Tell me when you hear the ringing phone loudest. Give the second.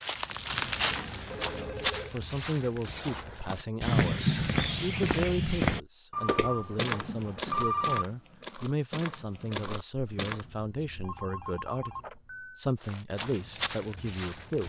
8 s.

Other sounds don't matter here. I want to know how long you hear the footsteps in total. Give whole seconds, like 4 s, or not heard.
12 s.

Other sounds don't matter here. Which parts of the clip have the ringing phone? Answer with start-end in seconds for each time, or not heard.
0.5-2.1, 6.1-8.1, 9.9-12.7.